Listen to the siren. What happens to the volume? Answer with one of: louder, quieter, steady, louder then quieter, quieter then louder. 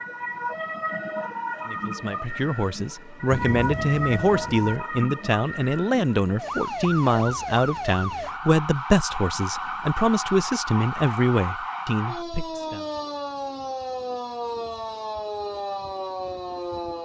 steady.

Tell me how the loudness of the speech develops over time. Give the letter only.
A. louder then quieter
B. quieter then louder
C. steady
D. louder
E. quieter
C.